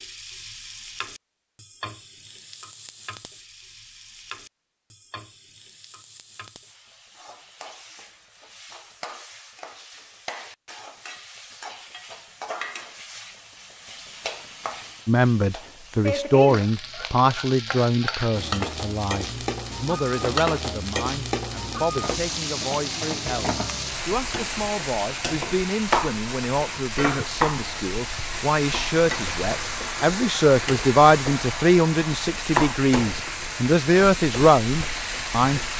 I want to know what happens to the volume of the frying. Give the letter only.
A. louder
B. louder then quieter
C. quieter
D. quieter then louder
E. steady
A.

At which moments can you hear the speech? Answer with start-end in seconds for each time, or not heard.
15.1-35.6.